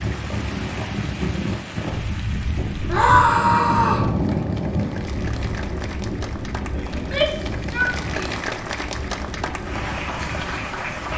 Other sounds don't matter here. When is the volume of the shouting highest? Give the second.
3 s.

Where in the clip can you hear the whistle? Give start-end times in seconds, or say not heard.
not heard.